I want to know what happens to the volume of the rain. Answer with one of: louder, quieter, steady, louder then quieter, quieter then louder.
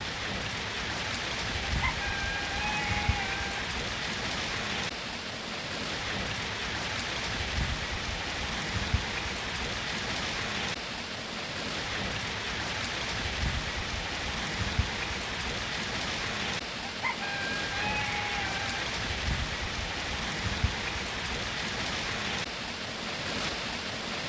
steady.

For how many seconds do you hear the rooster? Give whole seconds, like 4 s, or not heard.
4 s.